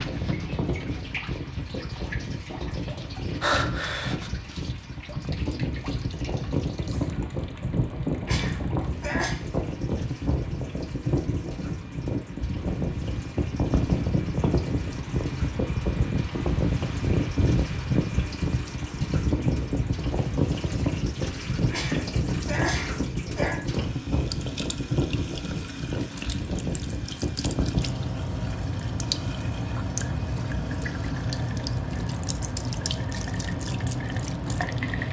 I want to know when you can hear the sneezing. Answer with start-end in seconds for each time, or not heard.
8.2-9.3, 21.7-23.6.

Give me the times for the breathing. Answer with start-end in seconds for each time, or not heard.
3.4-4.3.